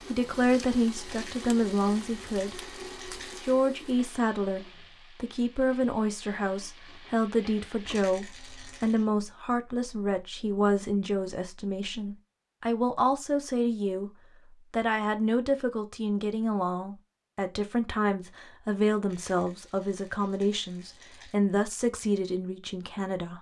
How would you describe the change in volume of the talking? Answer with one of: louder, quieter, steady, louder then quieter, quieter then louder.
steady.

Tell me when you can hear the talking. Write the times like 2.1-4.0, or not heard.
0.1-23.3.